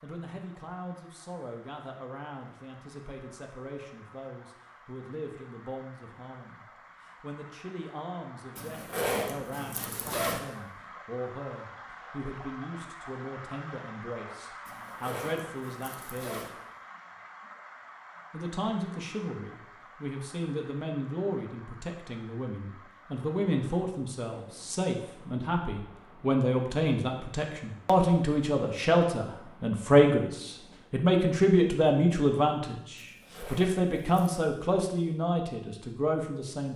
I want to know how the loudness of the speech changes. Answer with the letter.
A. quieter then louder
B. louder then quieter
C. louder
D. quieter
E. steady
C.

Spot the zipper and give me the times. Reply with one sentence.
You can hear the zipper from 8.6 to 10.4 s, from 14.7 to 16.5 s and from 33.0 to 34.4 s.